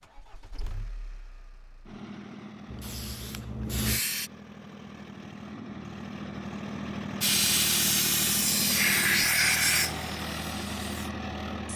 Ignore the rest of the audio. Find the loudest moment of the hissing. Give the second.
9 s.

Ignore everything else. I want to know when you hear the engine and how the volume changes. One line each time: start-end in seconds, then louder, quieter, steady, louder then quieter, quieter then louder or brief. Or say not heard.
0.0-11.7 louder.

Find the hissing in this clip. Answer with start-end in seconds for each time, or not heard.
2.6-4.3, 7.2-11.7.